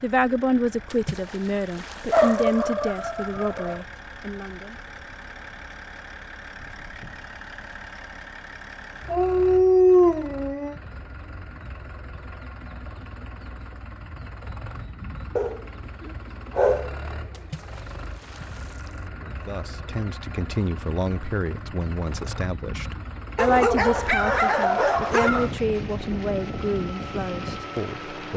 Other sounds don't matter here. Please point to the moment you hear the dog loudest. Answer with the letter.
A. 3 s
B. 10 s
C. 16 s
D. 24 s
B.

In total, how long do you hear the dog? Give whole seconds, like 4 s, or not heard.
7 s.